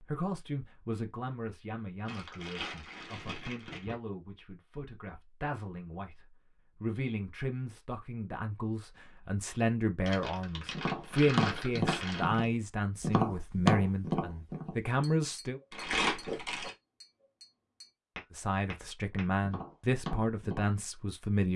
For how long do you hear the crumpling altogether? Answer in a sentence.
The crumpling can be heard for 5 seconds in total.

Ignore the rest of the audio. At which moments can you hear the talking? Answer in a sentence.
You can hear the talking from 0.0 to 15.6 s and from 18.3 to 21.5 s.